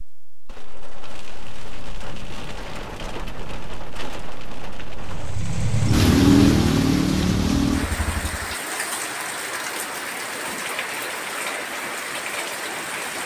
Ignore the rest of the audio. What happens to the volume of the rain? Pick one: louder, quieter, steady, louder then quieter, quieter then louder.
louder.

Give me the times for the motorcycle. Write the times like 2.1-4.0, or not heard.
5.0-8.6.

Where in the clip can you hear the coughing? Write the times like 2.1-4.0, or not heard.
not heard.